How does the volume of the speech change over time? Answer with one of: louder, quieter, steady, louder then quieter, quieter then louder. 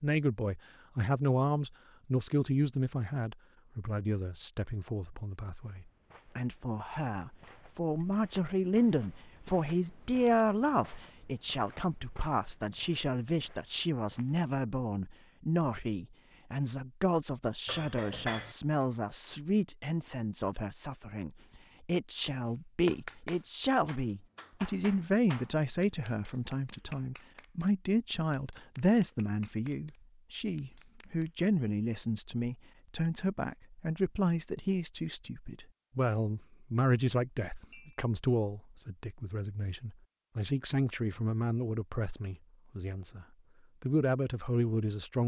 steady.